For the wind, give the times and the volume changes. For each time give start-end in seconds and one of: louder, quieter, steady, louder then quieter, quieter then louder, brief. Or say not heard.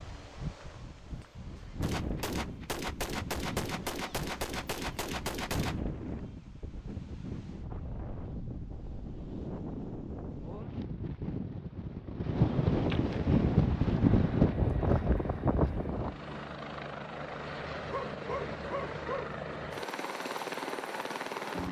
0.0-16.2 louder.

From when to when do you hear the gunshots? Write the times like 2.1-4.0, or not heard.
1.8-5.8.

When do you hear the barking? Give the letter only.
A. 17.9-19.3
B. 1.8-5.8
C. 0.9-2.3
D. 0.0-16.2
A.